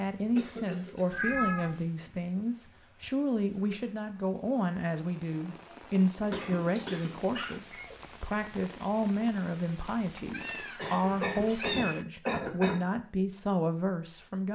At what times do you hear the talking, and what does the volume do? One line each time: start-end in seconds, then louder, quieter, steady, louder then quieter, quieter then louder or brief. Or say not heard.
0.0-14.5 steady.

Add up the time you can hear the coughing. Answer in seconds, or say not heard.
5 s.